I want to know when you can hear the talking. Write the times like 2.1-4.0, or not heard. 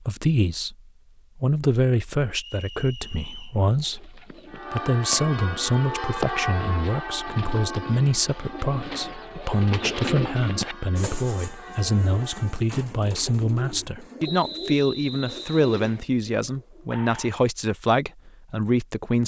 0.0-0.8, 1.4-19.2.